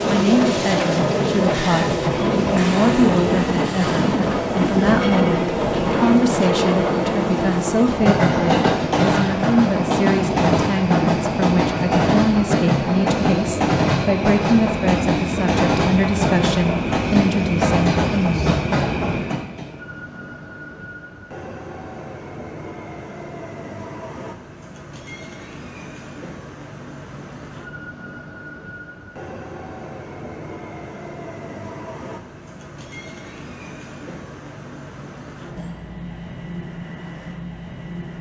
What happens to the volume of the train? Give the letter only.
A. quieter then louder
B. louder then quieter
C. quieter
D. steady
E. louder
C.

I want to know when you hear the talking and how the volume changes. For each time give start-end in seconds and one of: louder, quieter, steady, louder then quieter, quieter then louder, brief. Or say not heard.
0.1-18.6 steady.